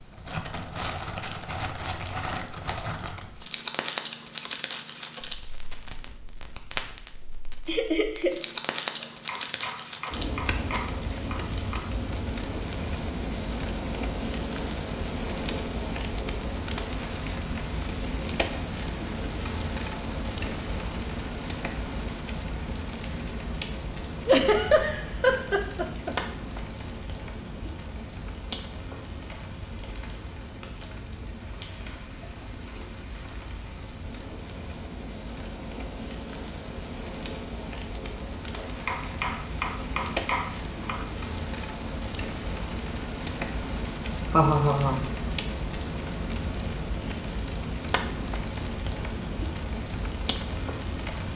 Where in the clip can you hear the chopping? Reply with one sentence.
The chopping can be heard from 9.0 to 11.9 s and from 38.6 to 41.1 s.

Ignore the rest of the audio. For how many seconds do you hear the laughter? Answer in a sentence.
You can hear the laughter for 3 seconds altogether.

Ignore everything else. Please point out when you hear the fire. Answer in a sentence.
You can hear the fire from 0.0 to 51.3 s.